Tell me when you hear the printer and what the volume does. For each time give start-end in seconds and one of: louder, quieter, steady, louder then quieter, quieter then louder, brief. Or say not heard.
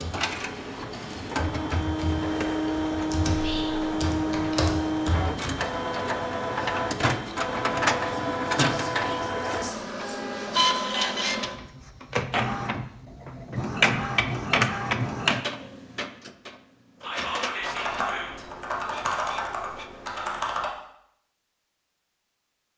0.0-20.4 quieter.